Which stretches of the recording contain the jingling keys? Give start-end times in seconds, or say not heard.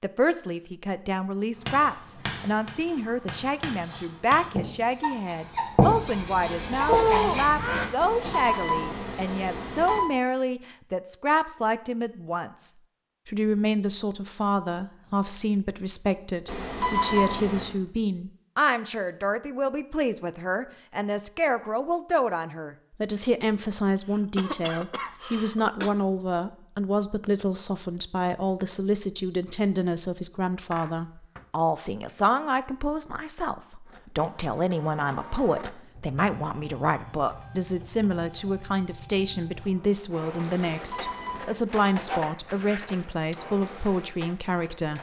not heard.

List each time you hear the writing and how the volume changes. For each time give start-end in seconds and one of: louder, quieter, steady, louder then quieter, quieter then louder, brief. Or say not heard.
1.6-8.3 louder.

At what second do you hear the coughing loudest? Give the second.
7 s.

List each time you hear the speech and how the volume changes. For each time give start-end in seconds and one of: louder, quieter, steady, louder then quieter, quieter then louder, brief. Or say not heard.
0.0-44.9 steady.